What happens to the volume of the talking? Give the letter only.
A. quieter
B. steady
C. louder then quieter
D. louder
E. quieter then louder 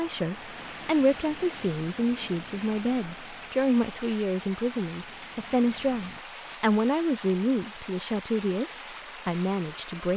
B.